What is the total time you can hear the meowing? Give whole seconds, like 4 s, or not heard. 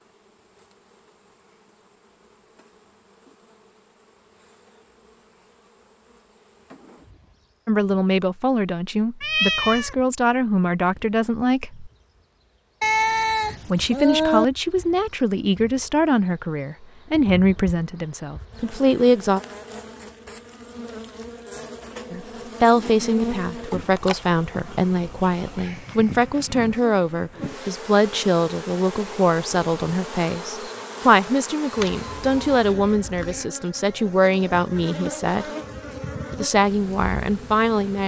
4 s.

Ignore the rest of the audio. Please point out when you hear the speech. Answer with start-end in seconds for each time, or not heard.
7.7-11.9, 13.7-19.4, 22.1-35.5, 36.3-38.0.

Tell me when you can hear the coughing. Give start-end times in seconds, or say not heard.
not heard.